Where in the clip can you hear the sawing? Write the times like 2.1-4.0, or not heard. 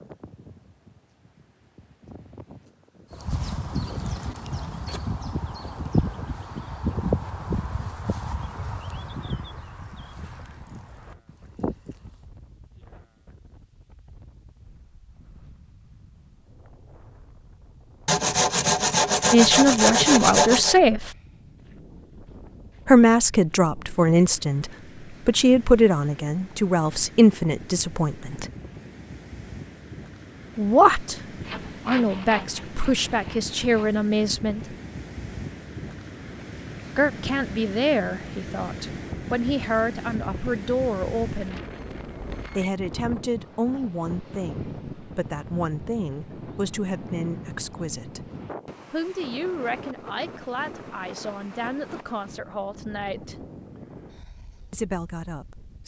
18.1-20.8, 31.4-34.0.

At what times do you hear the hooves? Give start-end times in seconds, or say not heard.
3.1-12.2.